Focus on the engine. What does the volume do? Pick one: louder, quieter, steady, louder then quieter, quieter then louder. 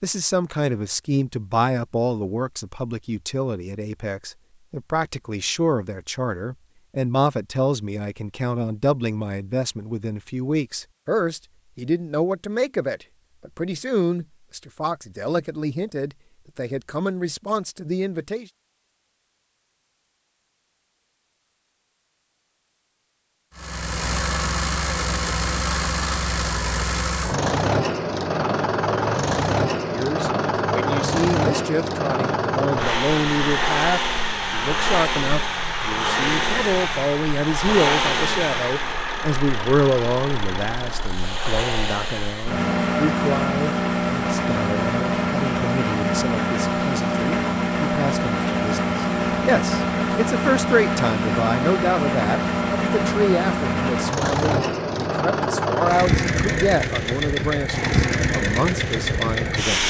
steady.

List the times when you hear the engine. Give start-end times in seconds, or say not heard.
23.6-59.8.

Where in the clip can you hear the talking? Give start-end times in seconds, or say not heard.
0.0-18.4, 29.9-59.8.